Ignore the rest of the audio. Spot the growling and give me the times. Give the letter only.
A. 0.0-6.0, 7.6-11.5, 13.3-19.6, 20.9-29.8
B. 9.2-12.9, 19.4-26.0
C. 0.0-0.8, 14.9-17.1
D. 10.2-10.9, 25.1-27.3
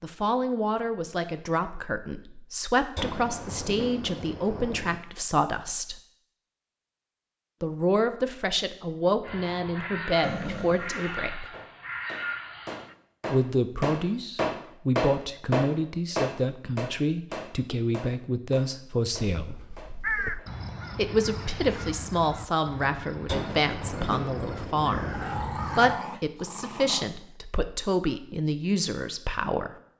D.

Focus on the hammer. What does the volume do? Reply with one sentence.
The loudness of the hammer goes up, then down.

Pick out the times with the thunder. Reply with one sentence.
You can hear the thunder from 3.0 to 5.0 s and from 23.2 to 25.3 s.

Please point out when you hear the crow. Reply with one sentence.
You can hear the crow from 9.2 to 12.9 s and from 19.4 to 26.0 s.